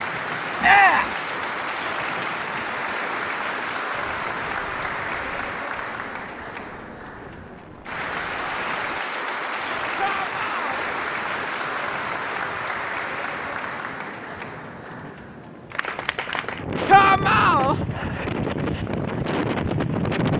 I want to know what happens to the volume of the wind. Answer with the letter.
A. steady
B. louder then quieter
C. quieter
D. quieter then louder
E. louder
E.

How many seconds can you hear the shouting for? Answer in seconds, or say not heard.
2 s.